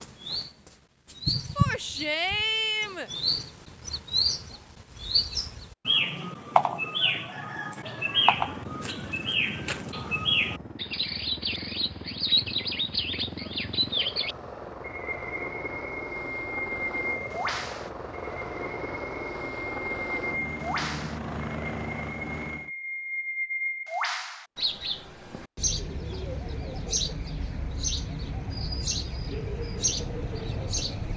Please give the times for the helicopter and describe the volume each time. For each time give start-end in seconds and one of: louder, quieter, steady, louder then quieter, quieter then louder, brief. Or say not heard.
8.1-22.7 louder.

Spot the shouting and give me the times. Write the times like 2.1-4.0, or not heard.
1.6-3.1.